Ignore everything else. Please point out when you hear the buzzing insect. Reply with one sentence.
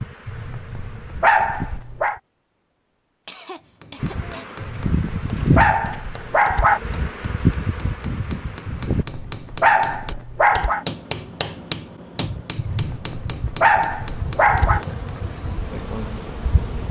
The buzzing insect can be heard from 0.0 to 1.8 s, from 4.0 to 9.1 s and from 12.2 to 16.8 s.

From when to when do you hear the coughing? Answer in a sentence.
The coughing can be heard from 3.2 to 4.5 s.